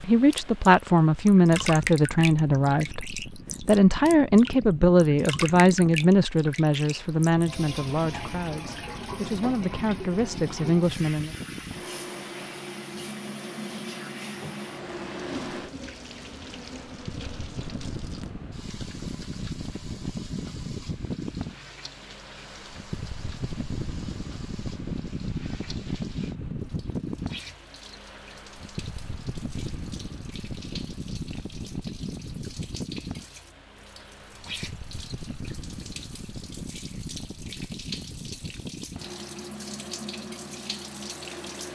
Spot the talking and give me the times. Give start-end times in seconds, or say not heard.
0.0-11.3.